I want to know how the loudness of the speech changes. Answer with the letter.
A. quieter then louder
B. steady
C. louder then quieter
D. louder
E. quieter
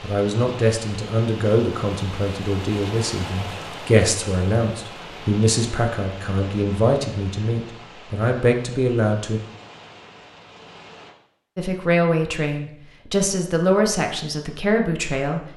B.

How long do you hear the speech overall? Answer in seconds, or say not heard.
13 s.